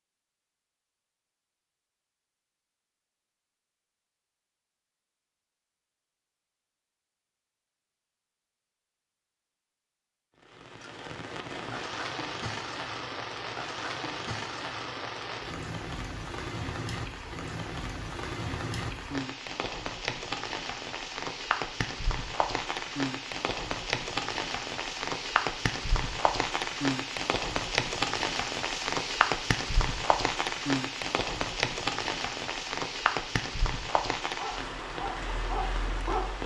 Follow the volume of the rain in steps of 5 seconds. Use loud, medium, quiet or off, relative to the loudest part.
off, off, medium, medium, loud, loud, loud, medium.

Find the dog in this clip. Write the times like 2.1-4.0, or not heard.
34.3-36.4.